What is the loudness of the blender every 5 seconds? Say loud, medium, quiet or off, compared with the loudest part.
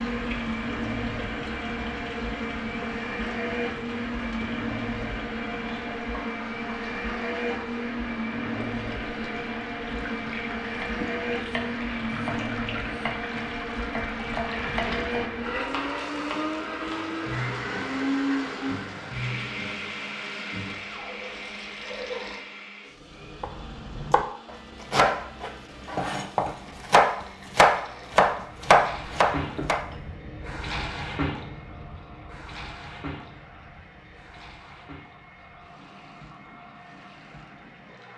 loud, loud, loud, loud, medium, quiet, quiet, quiet.